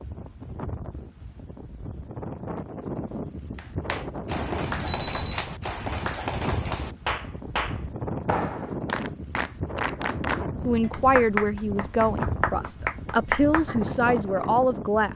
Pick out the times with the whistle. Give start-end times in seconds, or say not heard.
not heard.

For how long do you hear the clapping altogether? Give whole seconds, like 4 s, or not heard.
11 s.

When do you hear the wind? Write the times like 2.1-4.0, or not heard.
0.0-15.1.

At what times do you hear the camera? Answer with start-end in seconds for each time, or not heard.
4.8-5.5.